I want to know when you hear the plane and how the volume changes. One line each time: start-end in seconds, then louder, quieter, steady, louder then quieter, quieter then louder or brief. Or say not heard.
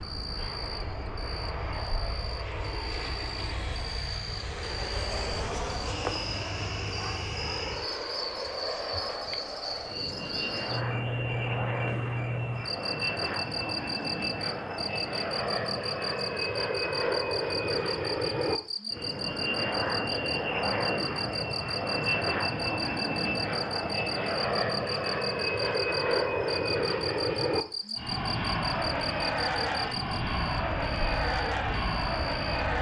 0.0-32.7 louder.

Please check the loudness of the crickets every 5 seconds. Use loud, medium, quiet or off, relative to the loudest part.
medium, loud, loud, loud, loud, loud, medium.